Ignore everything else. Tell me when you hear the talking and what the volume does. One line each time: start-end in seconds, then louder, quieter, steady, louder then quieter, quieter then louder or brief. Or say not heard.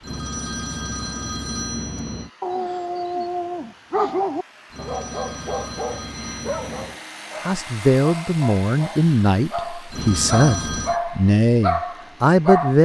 7.4-12.8 steady.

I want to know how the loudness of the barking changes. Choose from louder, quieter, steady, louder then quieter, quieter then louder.
quieter then louder.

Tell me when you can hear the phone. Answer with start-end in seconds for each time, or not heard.
0.0-2.3, 4.7-7.0, 9.9-11.0.